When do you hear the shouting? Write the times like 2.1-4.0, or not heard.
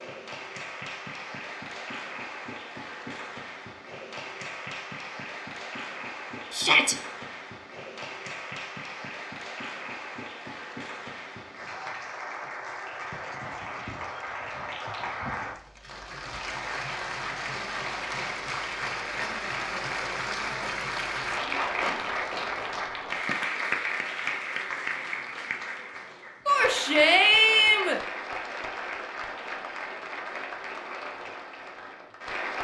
6.5-7.0, 26.4-28.0.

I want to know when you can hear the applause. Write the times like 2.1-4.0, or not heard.
0.0-32.5.